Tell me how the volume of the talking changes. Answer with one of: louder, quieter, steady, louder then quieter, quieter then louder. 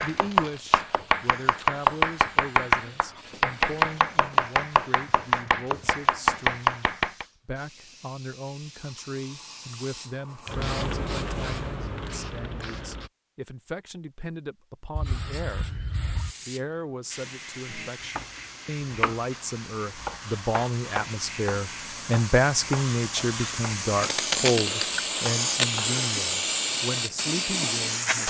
louder.